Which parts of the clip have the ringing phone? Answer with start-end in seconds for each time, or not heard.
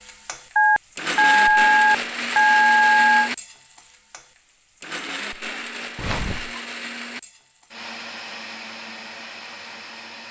0.6-3.3, 6.0-6.6.